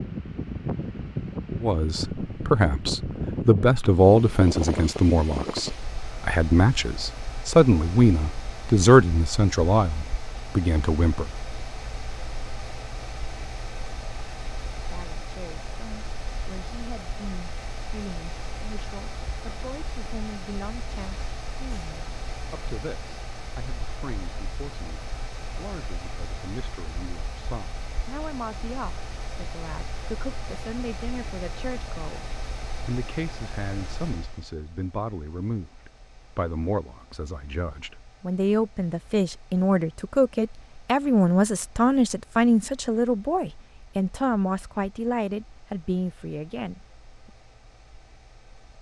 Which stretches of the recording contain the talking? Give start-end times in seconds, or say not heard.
1.6-11.3, 14.7-46.8.